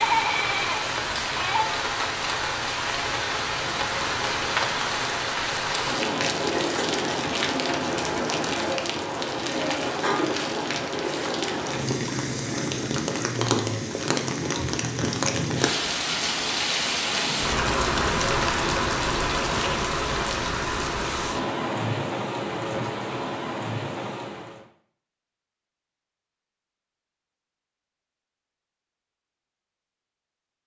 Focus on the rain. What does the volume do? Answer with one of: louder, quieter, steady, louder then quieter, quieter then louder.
steady.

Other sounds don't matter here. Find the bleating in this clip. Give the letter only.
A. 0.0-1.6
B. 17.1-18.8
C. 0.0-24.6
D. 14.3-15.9
A.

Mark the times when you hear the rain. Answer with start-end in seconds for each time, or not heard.
0.0-24.6.